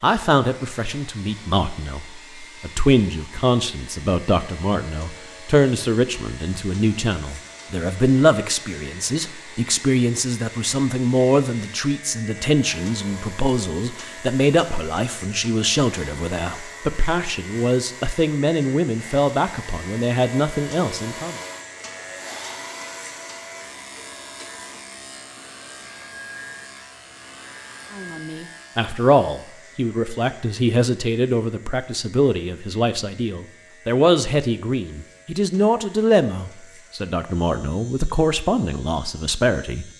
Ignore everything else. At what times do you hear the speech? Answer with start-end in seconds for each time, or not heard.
0.0-21.4, 27.9-39.9.